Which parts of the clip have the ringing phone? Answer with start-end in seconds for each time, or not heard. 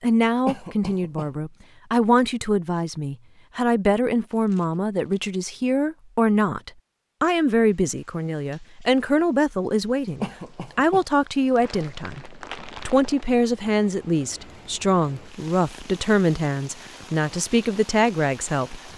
not heard.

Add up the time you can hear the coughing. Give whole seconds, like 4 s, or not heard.
2 s.